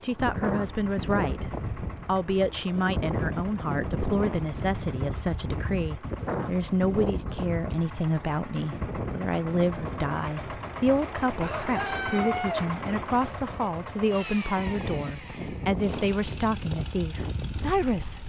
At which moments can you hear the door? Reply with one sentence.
The door can't be heard in this clip.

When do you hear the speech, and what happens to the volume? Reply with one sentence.
The speech can be heard from 0.0 to 18.2 s, at a steady volume.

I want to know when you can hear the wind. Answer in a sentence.
You can hear the wind from 0.1 to 18.2 s.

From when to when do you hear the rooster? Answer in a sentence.
The rooster can be heard from 11.4 to 12.7 s.